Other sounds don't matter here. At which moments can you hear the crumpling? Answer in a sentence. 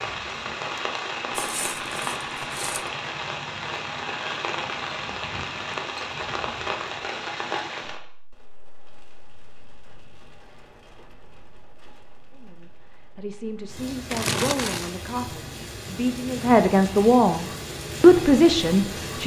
The crumpling can be heard from 1.3 to 2.9 s and from 14.1 to 14.9 s.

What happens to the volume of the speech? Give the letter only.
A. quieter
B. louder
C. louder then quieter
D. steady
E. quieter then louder
B.